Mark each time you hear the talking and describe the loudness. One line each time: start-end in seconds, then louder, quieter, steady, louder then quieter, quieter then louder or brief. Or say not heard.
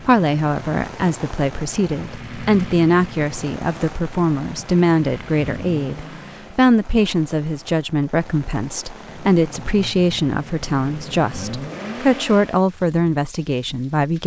0.1-14.2 steady.